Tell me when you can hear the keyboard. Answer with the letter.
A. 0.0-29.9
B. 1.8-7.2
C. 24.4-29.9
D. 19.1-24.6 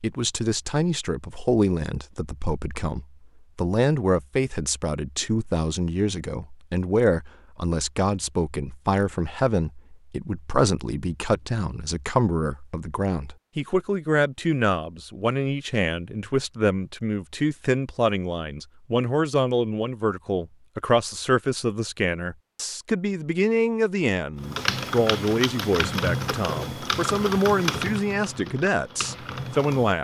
C.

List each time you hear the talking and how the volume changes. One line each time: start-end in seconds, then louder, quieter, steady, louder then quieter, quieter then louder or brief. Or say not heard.
0.0-29.9 steady.